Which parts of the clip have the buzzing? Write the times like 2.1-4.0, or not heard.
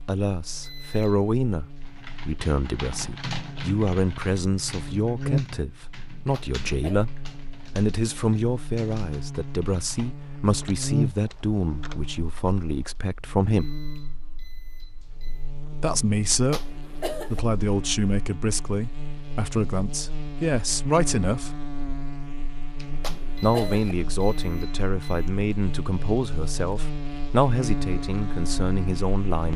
0.0-29.5.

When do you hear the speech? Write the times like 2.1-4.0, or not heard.
0.1-13.8, 15.8-21.6, 23.4-29.5.